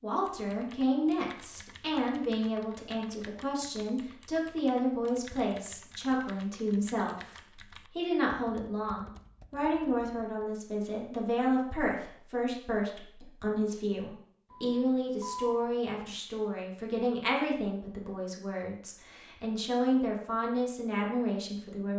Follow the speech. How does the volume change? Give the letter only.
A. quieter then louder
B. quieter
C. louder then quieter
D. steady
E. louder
D.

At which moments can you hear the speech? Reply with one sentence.
The speech can be heard from 0.0 to 21.9 s.